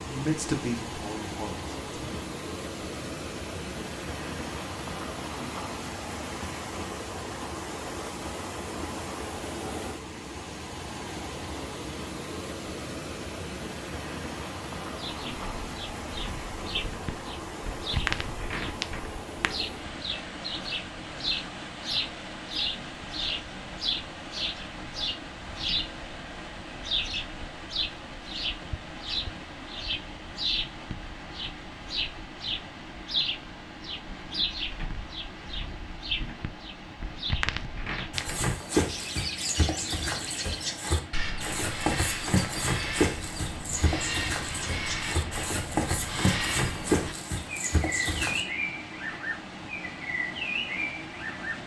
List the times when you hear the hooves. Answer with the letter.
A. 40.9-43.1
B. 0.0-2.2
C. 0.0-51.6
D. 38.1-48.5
D.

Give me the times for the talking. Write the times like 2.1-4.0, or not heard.
0.0-2.2.